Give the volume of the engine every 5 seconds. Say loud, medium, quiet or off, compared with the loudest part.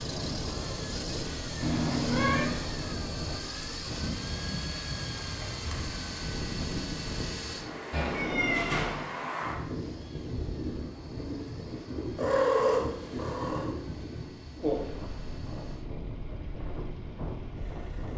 loud, loud, quiet, quiet.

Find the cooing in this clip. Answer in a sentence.
You can't hear the cooing here.